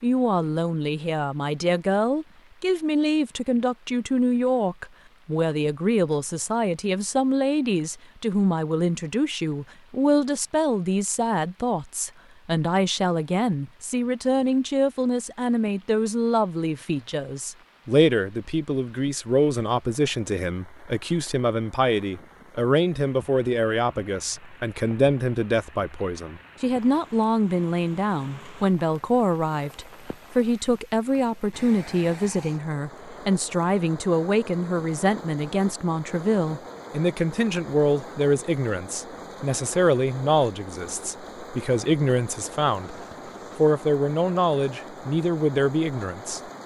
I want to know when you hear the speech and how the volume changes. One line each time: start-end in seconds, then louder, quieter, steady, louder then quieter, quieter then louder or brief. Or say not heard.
0.0-43.0 steady
43.5-46.4 brief.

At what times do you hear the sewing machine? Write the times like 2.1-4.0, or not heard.
not heard.